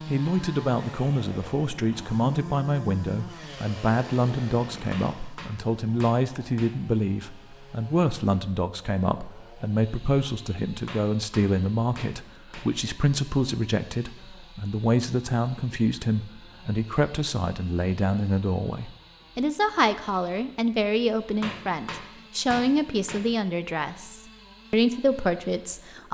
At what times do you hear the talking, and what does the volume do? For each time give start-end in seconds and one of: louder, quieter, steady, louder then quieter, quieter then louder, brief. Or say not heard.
0.1-26.0 steady.